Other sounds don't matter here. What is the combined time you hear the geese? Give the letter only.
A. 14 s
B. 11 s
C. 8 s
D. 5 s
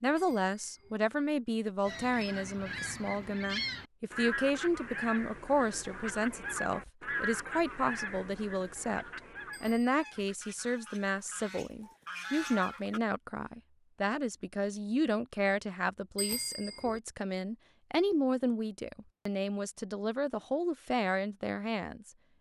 B.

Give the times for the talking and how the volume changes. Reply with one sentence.
You can hear the talking from 0.0 to 22.1 s, at a steady volume.